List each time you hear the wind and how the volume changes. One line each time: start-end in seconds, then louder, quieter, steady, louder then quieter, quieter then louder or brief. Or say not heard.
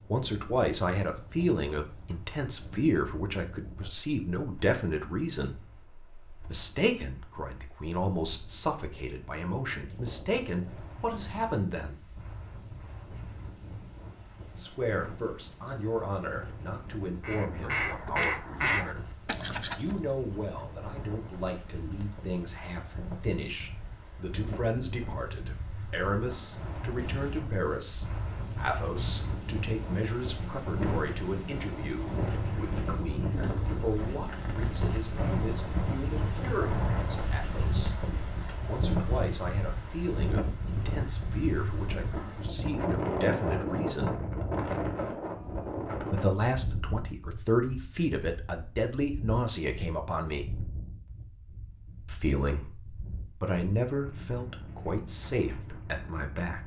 0.0-56.6 louder then quieter.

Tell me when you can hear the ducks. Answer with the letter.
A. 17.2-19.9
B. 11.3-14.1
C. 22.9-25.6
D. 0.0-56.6
A.